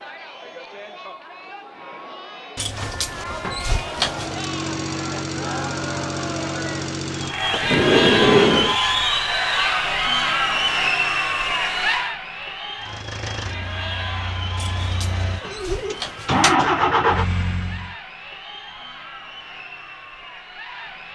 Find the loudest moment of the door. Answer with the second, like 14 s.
8 s.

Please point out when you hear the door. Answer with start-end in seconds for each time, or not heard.
2.5-4.5, 7.5-8.8, 14.6-16.6.